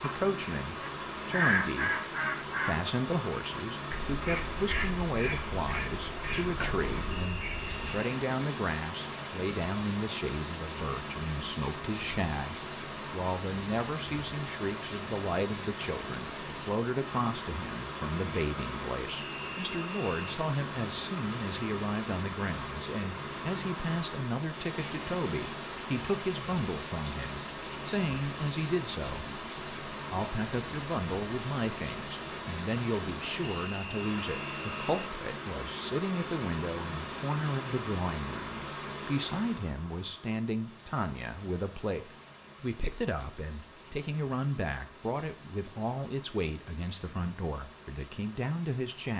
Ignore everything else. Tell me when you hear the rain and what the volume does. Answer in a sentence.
The rain can be heard from 0.0 to 49.1 s, getting quieter.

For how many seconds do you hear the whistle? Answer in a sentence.
You can hear the whistle for 4 seconds altogether.